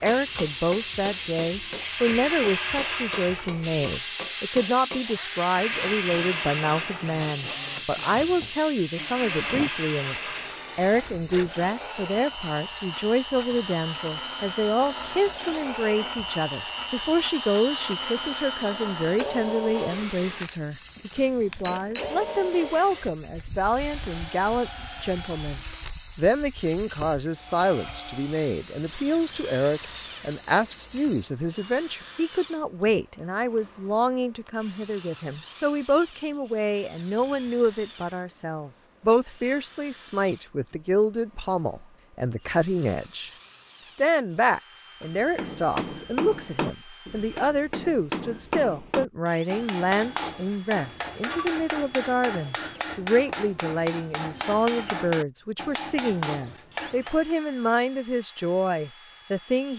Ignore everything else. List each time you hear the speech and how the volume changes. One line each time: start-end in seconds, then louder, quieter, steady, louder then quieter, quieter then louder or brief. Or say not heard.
0.0-59.7 steady.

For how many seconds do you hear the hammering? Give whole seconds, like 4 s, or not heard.
20 s.